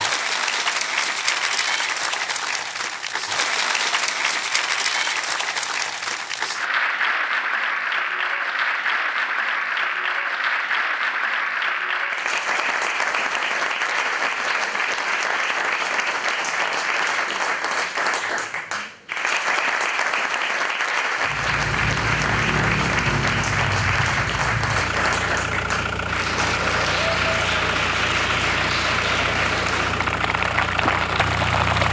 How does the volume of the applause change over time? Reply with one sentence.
The volume of the applause stays about the same.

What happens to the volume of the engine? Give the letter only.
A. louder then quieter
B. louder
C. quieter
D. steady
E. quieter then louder
D.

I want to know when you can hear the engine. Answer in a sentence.
You can hear the engine from 21.2 to 31.8 s.